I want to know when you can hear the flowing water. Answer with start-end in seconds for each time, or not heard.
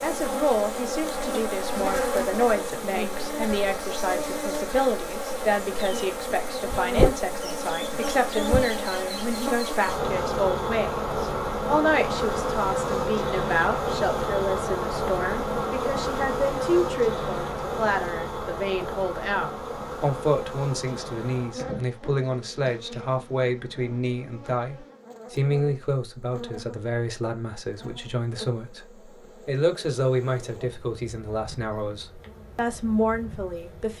not heard.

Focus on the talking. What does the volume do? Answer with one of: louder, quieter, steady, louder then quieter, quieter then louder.
steady.